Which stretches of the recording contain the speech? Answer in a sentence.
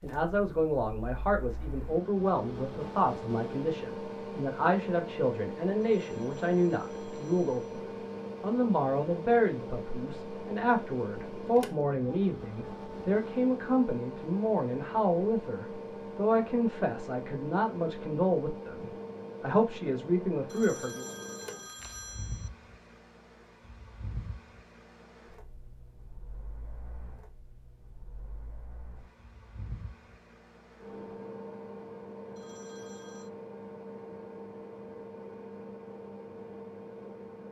The speech can be heard from 0.0 to 7.8 s and from 8.4 to 21.1 s.